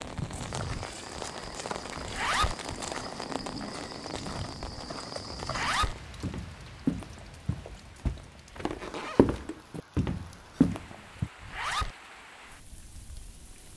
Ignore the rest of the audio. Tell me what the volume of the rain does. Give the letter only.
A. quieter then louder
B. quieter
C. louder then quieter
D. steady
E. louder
B.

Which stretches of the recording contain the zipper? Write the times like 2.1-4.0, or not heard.
2.0-2.5, 5.4-6.0, 11.3-11.9.